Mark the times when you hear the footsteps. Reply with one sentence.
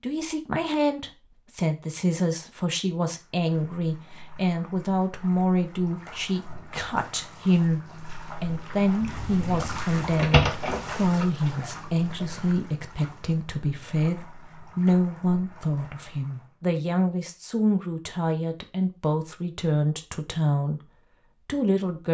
You can't hear the footsteps here.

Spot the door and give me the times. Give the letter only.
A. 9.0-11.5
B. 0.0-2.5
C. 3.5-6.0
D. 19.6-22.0
A.